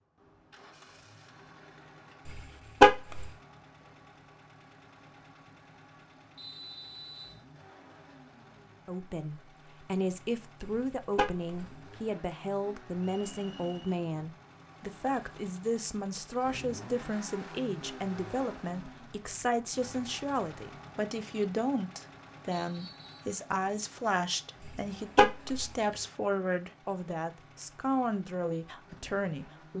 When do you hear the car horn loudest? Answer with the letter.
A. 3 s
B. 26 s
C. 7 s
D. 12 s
A.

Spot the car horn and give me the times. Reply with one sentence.
The car horn can be heard from 2.2 to 3.3 s, from 10.7 to 11.7 s and from 24.6 to 25.7 s.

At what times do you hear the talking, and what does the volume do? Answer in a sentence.
You can hear the talking from 8.8 to 29.7 s, at a steady volume.